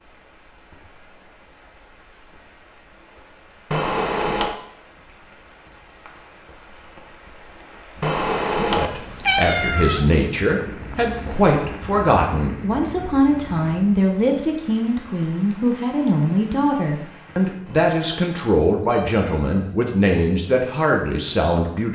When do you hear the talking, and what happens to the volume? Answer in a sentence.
The talking can be heard from 8.6 to 21.9 s, at a steady volume.